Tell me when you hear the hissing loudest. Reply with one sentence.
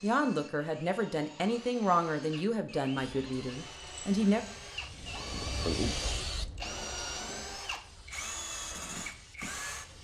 The loudest moment of the hissing is at 6 seconds.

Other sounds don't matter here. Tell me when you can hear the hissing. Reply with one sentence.
The hissing can be heard from 3.0 to 9.9 s.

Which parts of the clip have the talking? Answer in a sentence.
You can hear the talking from 0.0 to 4.4 s.